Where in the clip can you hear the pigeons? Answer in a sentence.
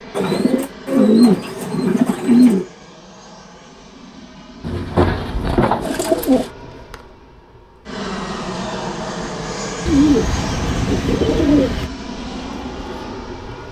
The pigeons can be heard from 0.1 to 2.6 s, from 4.6 to 6.5 s and from 9.8 to 11.9 s.